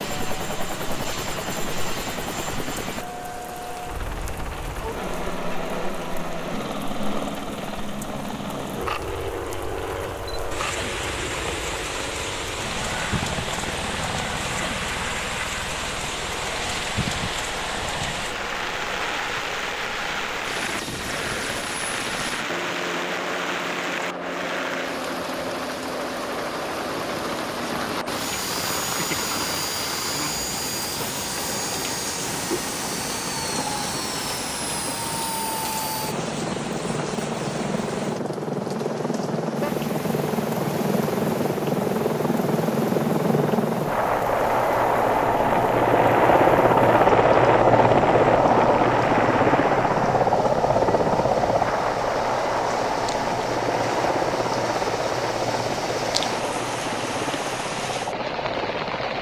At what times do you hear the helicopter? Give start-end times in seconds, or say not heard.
0.0-59.1.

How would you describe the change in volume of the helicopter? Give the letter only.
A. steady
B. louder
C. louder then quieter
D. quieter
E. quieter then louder
B.